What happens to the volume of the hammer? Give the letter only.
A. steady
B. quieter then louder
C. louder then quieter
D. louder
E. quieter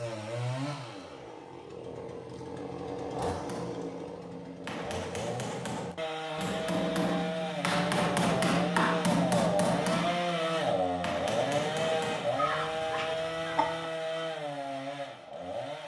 C.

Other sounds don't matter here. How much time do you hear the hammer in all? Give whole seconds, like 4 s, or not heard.
9 s.